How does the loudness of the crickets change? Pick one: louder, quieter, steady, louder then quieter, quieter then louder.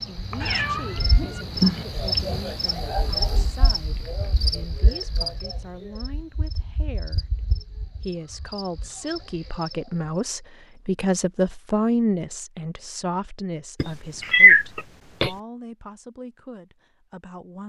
quieter.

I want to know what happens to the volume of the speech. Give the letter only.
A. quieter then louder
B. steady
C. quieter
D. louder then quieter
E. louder
D.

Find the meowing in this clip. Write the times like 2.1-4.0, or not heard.
0.4-1.9, 13.8-15.3.